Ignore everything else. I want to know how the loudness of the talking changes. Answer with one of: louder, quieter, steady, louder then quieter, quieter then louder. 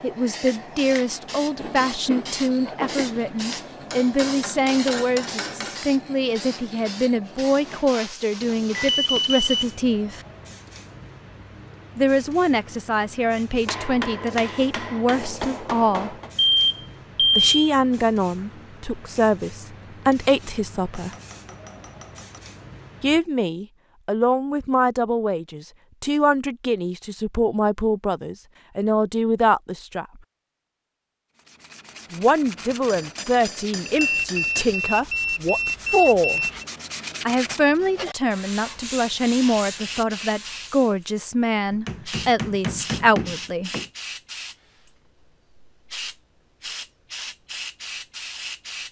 steady.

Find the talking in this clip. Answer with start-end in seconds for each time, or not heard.
0.0-10.2, 11.9-16.1, 17.4-21.1, 23.0-30.1, 32.1-36.4, 37.2-43.7.